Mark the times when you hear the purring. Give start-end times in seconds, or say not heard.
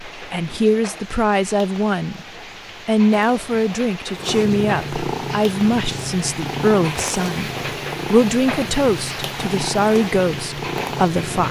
4.2-11.4.